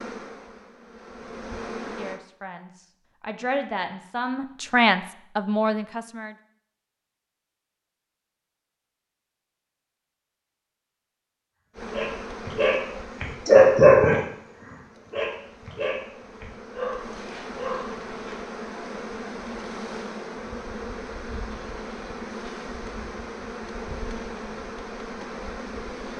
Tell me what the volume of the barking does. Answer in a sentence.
The volume of the barking goes up, then down.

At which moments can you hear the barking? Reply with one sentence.
The barking can be heard from 11.9 to 18.4 s.